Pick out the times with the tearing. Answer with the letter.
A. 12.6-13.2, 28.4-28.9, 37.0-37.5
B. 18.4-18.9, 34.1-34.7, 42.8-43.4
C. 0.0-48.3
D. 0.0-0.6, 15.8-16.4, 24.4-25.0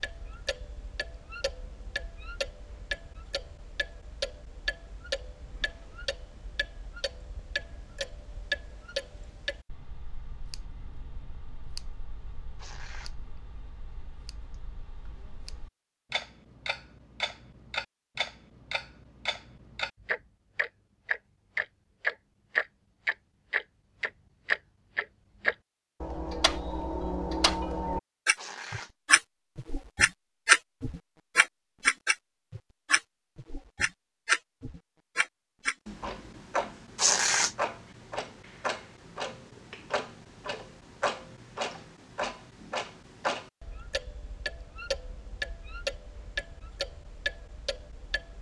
A.